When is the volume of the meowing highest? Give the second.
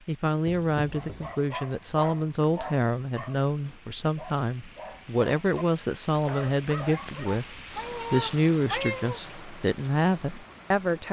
9 s.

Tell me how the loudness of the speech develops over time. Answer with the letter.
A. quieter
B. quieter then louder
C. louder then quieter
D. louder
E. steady
E.